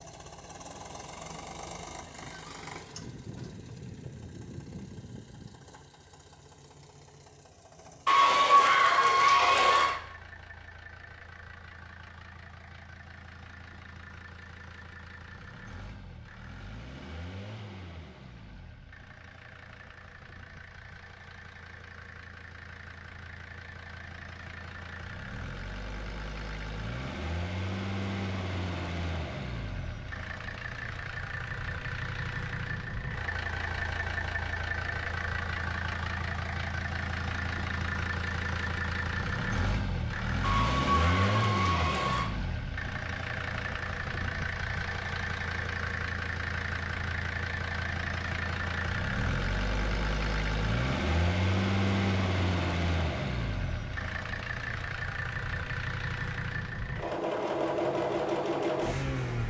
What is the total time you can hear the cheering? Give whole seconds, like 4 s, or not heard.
4 s.